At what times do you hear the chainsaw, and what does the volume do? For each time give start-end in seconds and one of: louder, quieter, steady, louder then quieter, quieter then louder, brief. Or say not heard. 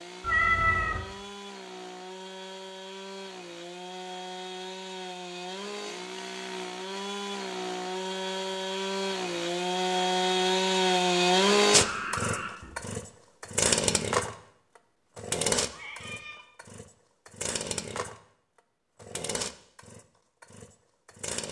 0.0-21.4 louder then quieter.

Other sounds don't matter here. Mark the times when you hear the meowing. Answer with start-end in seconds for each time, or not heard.
0.2-1.1, 11.8-12.8, 15.7-16.4.